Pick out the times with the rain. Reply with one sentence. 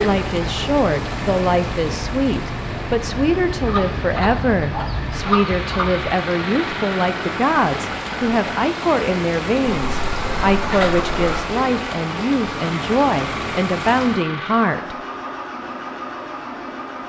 The rain can be heard from 0.0 to 14.3 s.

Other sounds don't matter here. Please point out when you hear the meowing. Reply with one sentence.
You can't hear the meowing here.